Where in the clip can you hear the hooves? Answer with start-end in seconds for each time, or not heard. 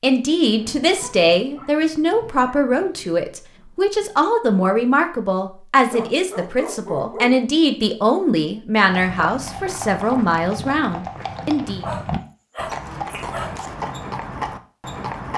8.8-15.3.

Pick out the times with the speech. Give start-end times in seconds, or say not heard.
0.0-11.8.